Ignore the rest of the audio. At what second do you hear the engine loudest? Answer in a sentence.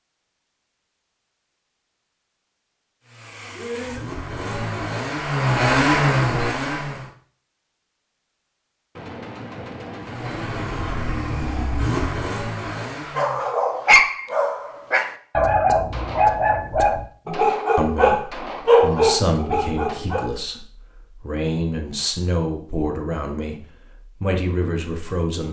The loudest moment of the engine is at 6 seconds.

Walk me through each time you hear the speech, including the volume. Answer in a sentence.
The speech can be heard from 17.2 to 25.4 s, at a steady volume.